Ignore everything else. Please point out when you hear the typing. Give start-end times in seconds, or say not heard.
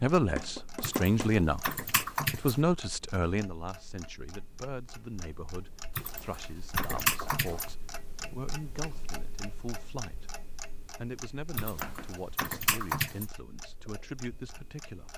0.8-2.5, 6.0-7.7, 11.6-13.2.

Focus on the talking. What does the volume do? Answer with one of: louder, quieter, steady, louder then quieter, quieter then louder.
quieter.